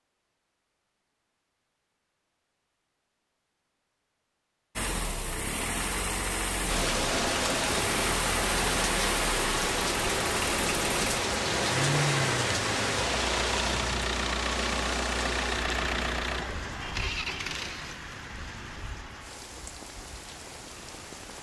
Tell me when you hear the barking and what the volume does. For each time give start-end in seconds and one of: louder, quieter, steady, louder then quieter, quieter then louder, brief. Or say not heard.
not heard.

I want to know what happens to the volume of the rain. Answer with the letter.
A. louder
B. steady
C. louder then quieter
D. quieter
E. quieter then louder
D.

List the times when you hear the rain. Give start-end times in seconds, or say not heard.
6.7-21.3.